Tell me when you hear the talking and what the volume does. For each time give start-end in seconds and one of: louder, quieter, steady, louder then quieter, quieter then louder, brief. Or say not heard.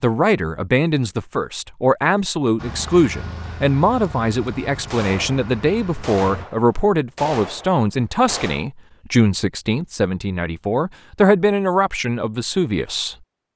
0.0-13.2 steady.